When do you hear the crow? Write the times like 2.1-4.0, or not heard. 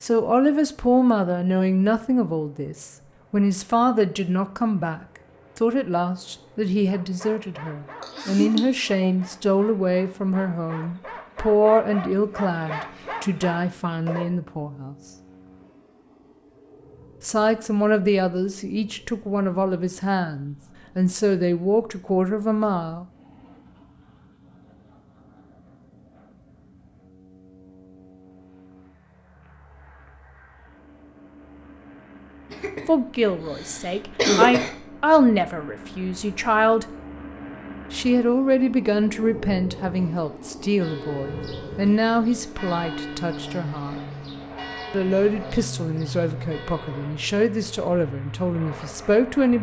not heard.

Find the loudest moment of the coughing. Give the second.
34 s.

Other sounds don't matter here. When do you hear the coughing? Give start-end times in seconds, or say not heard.
8.0-8.7, 32.5-34.7.